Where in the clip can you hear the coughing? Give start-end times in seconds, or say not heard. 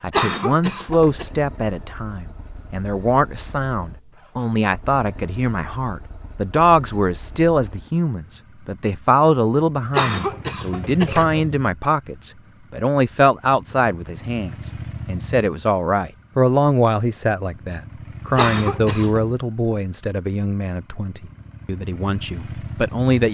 0.1-1.2, 9.9-11.4, 18.4-19.2.